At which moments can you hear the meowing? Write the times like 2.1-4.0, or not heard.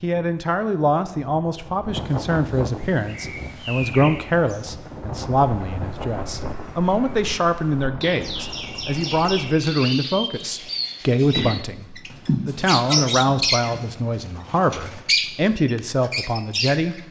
12.1-13.9.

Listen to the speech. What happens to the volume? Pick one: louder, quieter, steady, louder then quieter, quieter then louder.
steady.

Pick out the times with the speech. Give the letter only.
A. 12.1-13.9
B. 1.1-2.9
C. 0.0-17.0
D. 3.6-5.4
C.